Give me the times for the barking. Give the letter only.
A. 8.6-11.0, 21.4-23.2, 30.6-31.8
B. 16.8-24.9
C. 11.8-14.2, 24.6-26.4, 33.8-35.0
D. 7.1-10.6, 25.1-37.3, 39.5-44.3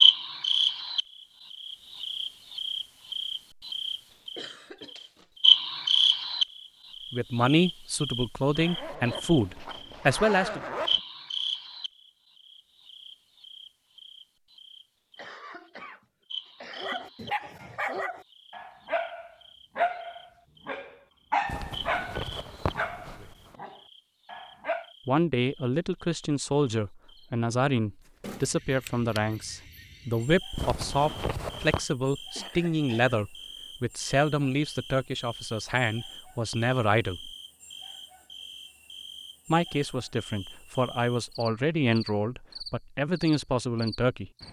B.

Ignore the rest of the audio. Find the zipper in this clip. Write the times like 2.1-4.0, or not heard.
8.6-11.0, 21.4-23.2, 30.6-31.8.